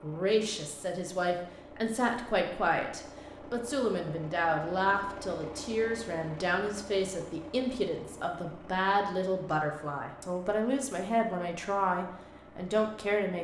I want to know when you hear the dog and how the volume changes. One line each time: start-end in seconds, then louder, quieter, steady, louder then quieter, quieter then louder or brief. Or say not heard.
not heard.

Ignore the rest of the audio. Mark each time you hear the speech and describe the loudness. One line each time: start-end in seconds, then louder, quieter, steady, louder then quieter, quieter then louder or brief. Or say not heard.
0.0-13.4 steady.